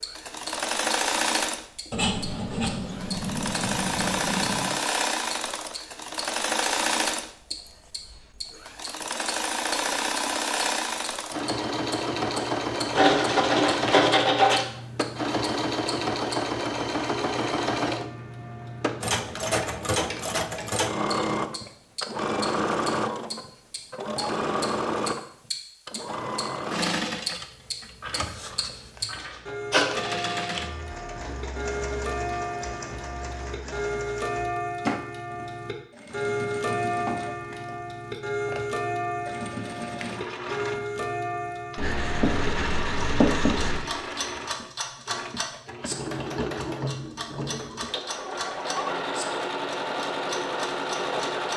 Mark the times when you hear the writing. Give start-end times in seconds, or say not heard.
1.9-4.7, 12.9-14.7, 29.0-30.0, 41.8-43.9.